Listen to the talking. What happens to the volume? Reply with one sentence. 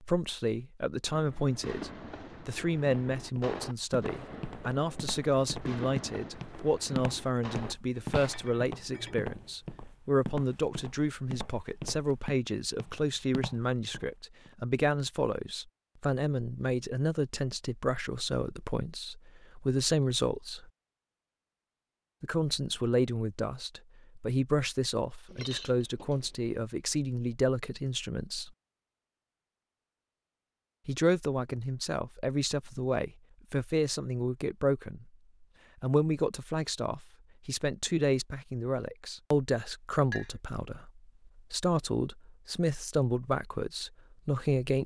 The loudness of the talking stays about the same.